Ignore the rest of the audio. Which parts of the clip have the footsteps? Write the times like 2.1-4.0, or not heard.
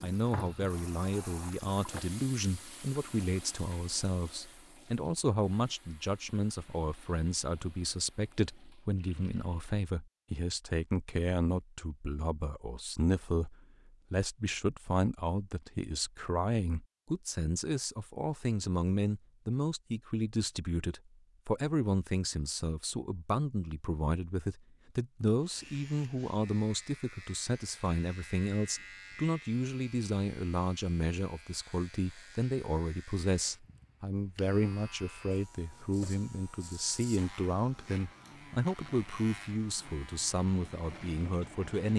not heard.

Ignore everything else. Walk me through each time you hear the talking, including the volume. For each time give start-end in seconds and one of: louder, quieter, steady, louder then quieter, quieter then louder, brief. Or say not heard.
0.0-41.9 steady.